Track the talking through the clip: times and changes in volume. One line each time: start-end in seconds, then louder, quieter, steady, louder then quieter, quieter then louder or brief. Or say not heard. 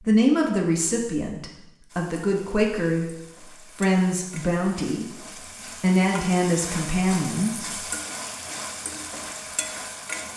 0.0-7.8 steady.